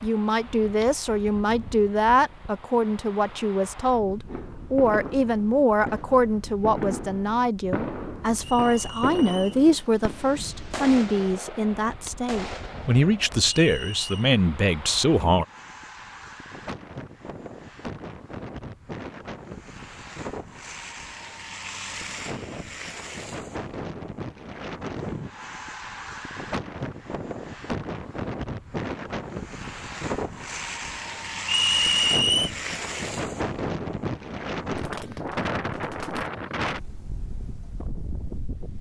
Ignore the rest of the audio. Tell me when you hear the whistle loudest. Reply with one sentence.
The loudest moment of the whistle is at 32 seconds.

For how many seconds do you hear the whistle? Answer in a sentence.
The whistle can be heard for 3 seconds in total.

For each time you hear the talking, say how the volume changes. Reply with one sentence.
You can hear the talking from 0.0 to 15.4 s, at a steady volume.